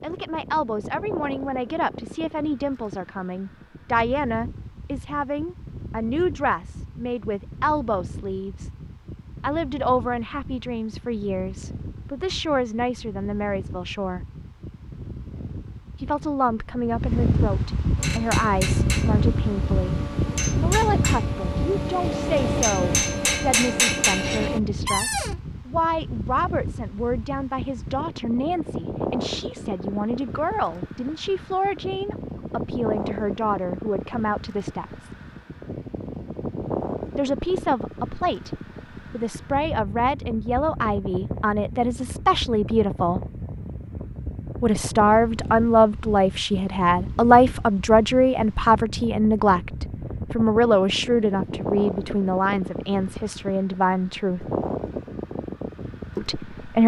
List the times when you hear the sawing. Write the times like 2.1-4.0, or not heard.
not heard.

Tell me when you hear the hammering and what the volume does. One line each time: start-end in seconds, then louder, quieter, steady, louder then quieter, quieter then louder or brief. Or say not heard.
17.9-24.6 louder.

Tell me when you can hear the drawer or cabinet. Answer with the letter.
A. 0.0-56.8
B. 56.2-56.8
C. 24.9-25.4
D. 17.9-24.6
C.